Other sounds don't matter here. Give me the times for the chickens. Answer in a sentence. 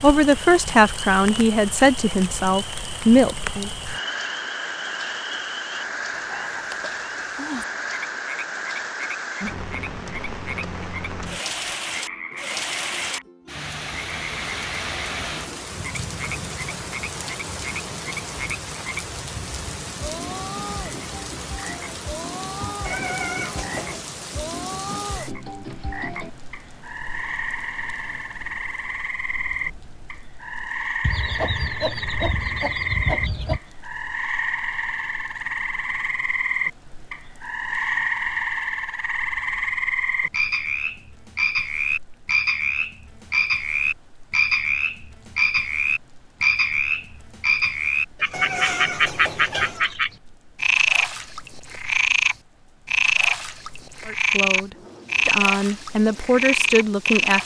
You can hear the chickens from 31.0 to 33.6 s.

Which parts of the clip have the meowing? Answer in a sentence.
You can hear the meowing from 22.9 to 24.0 s and from 48.3 to 49.9 s.